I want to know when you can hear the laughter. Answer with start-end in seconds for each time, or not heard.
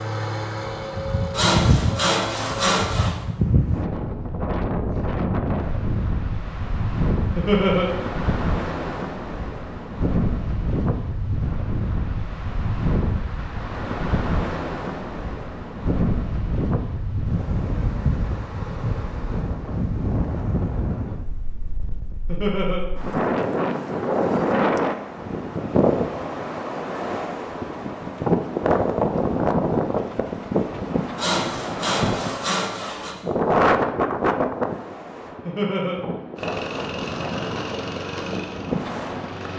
7.3-7.9, 22.2-22.8, 35.5-36.0.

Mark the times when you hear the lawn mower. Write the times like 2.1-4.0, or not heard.
0.0-2.6, 36.4-39.5.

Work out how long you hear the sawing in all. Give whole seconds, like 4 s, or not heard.
4 s.